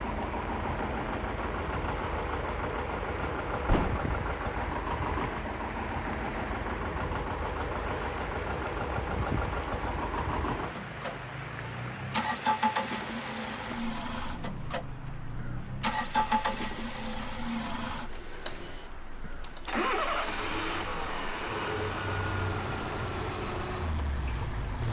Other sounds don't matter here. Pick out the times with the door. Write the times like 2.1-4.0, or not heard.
3.2-4.0.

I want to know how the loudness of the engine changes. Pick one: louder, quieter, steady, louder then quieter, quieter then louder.
steady.